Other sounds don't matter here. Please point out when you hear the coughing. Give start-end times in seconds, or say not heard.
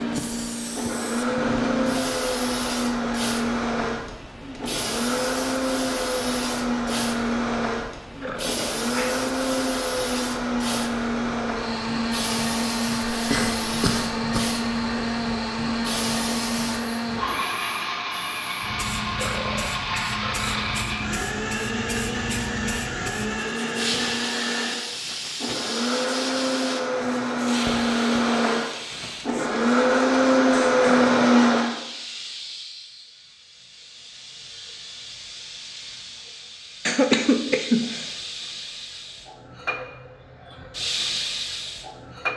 13.1-14.6, 36.9-38.1.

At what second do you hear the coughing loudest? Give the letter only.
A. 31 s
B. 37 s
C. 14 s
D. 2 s
B.